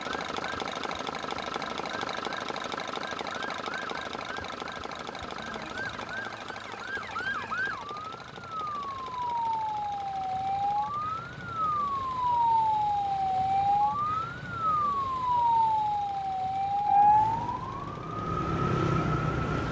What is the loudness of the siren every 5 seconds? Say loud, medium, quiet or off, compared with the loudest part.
quiet, medium, loud, loud.